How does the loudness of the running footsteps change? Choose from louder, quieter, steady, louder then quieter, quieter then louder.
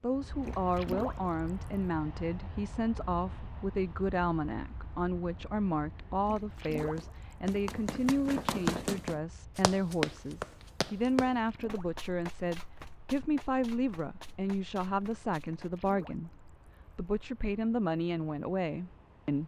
quieter.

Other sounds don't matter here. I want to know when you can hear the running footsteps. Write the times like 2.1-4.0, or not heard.
6.8-16.0.